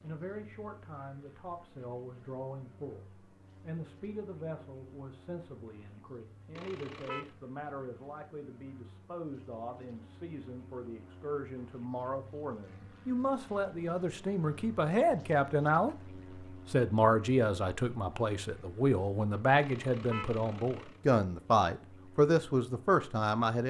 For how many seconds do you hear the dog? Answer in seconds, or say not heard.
not heard.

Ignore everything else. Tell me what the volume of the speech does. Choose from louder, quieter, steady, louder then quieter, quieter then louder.
louder.